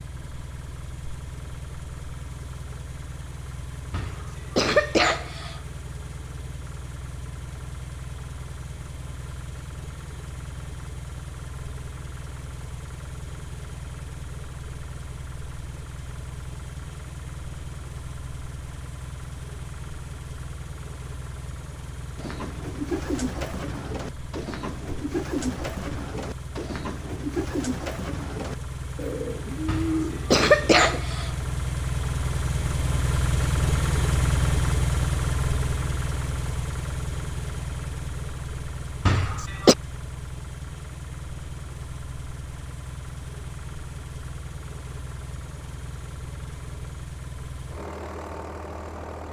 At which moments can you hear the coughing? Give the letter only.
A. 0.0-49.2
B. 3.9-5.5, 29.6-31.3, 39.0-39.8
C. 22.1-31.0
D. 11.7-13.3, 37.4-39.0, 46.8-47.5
B.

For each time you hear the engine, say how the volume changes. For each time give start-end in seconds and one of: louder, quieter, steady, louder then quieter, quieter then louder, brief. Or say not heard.
0.0-49.2 louder then quieter.